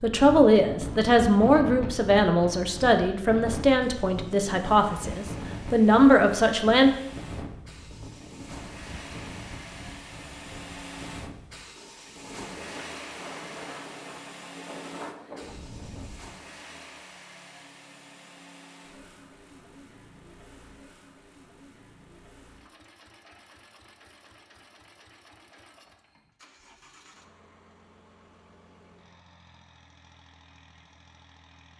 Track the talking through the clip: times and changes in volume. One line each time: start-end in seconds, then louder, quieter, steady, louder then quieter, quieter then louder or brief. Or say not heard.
0.0-6.9 quieter then louder.